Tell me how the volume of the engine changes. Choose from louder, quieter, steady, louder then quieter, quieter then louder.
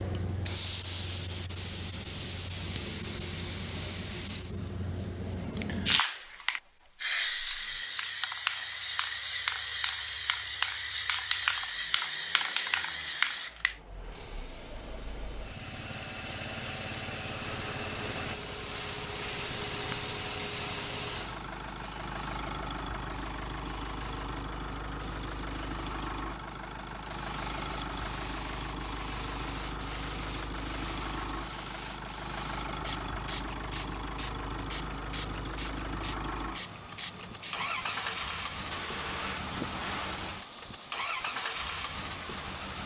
louder.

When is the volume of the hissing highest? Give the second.
1 s.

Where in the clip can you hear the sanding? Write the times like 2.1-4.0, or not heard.
not heard.